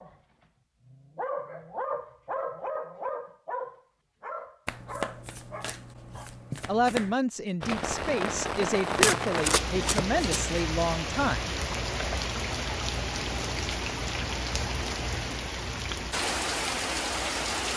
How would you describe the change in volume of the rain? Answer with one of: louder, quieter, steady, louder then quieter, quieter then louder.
steady.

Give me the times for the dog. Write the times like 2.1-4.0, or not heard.
0.0-6.3.